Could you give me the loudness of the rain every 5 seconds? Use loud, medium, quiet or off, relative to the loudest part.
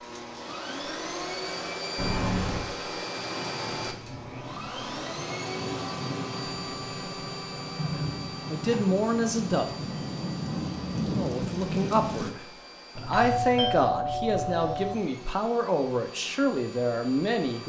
quiet, medium, loud, off.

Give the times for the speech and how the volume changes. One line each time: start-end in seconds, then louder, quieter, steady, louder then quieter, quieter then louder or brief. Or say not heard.
7.8-9.8 brief
11.2-17.6 steady.